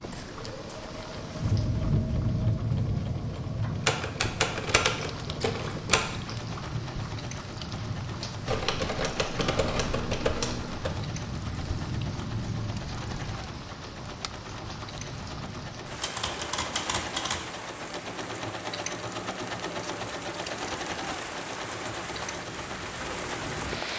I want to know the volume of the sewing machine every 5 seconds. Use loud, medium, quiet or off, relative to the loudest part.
medium, medium, medium, loud, loud.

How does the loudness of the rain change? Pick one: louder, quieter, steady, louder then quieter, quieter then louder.
quieter.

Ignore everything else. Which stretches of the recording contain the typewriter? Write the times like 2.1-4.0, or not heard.
3.8-6.3, 8.4-10.9, 16.0-17.6.